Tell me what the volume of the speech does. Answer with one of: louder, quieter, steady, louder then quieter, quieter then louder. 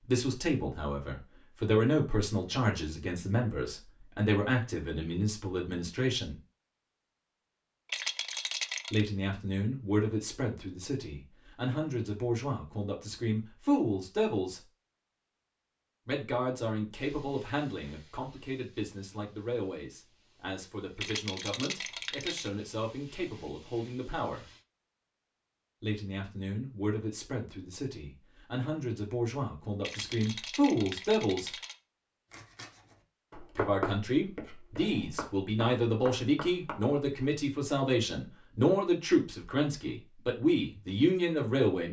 quieter then louder.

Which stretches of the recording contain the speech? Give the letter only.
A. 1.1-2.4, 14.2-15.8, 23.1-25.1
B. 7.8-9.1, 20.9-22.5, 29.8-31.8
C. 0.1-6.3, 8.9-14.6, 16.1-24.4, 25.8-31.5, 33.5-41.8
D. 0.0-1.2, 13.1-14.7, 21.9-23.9
C.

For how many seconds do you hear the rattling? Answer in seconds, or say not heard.
5 s.